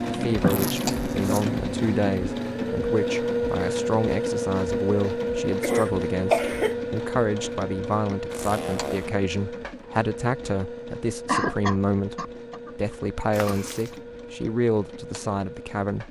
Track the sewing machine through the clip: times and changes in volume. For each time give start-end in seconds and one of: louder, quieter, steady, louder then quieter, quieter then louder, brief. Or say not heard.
0.0-16.0 quieter.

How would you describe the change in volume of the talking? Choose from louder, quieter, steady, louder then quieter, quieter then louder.
steady.